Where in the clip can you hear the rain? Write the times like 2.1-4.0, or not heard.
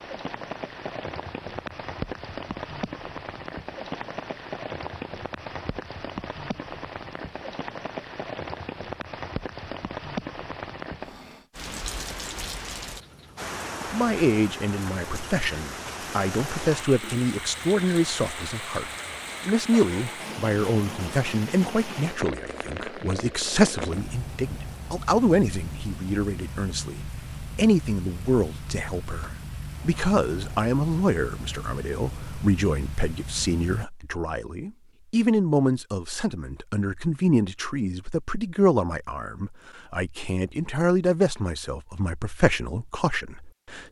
0.0-33.9.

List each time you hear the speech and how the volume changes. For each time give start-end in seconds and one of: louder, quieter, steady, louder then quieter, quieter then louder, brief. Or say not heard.
13.9-43.8 steady.